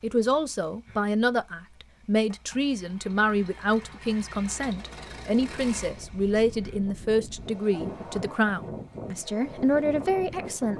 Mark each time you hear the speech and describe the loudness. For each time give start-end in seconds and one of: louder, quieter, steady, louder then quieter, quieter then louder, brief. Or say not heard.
0.0-10.7 steady.